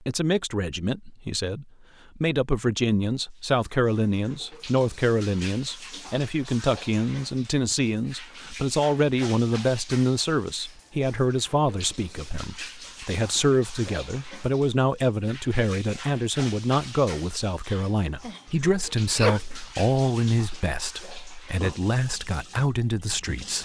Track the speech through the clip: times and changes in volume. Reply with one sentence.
You can hear the speech from 0.1 to 23.6 s, at a steady volume.